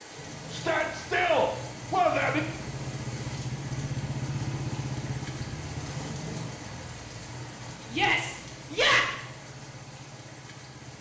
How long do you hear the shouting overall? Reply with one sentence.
The shouting can be heard for 3 seconds in total.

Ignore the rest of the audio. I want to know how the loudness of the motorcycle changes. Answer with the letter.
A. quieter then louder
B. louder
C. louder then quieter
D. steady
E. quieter
C.